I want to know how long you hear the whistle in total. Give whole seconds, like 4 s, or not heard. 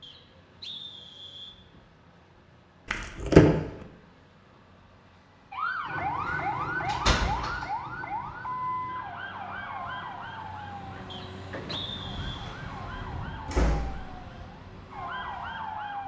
3 s.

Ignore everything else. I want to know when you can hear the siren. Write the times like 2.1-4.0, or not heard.
5.5-16.0.